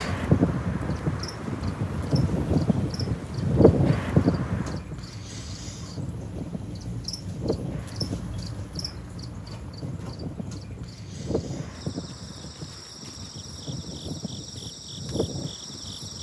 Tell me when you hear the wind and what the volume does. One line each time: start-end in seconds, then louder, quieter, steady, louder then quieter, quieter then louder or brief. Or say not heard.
0.0-16.1 quieter.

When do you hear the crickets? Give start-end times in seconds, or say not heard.
0.0-16.1.